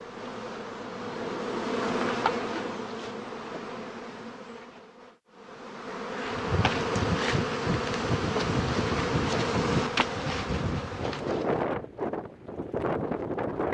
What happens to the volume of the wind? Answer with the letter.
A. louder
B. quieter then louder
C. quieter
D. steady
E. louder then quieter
D.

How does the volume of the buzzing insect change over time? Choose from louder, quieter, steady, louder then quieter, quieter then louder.
quieter then louder.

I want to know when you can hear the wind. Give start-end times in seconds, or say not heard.
6.3-13.6.